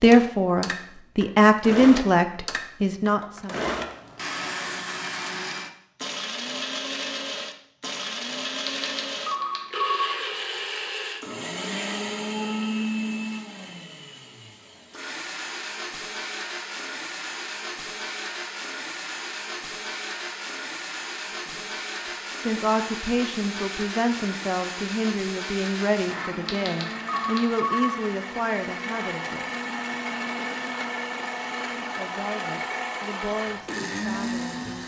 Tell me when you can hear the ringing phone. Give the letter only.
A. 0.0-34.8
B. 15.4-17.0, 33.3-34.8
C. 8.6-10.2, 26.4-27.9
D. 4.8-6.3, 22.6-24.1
C.